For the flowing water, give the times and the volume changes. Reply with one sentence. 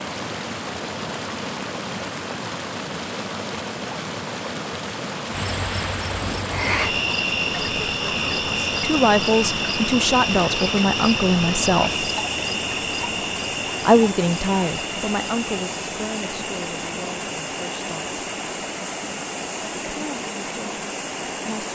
The flowing water can be heard from 0.0 to 21.7 s, at a steady volume.